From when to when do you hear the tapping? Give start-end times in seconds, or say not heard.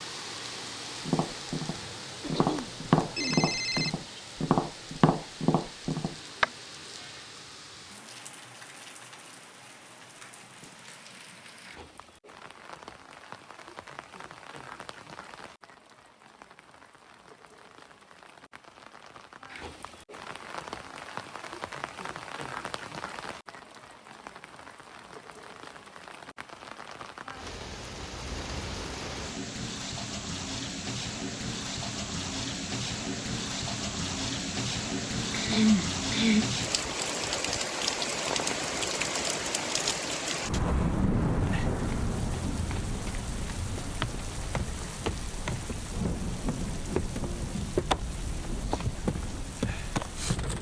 1.1-6.5.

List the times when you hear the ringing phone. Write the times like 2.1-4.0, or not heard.
2.5-3.9.